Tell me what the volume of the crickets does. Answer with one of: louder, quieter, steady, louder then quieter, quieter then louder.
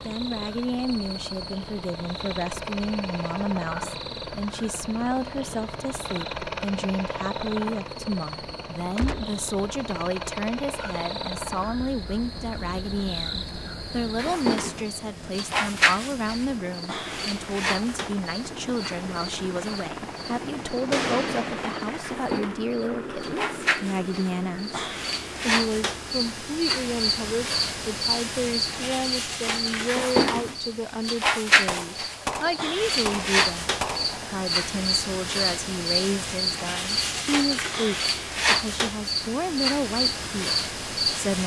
louder.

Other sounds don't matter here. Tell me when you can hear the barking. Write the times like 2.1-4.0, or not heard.
not heard.